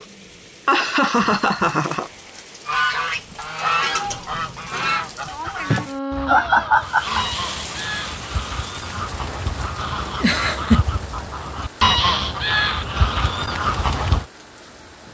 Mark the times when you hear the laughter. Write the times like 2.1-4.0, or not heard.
0.7-2.1, 5.7-7.2, 10.2-10.8.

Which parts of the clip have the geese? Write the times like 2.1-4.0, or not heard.
2.6-14.2.